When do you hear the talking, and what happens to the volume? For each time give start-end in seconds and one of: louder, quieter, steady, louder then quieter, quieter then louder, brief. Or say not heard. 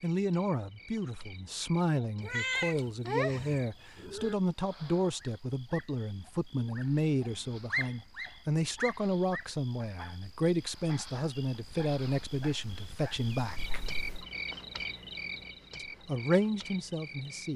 0.0-13.9 steady
15.8-17.5 brief.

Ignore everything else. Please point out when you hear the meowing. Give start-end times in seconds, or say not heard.
2.2-4.3, 13.6-14.2.